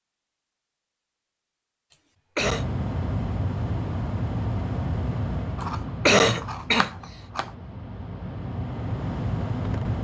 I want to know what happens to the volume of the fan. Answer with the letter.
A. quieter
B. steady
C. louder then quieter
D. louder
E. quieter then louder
E.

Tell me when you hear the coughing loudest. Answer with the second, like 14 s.
6 s.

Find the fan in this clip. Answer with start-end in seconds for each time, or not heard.
2.4-10.0.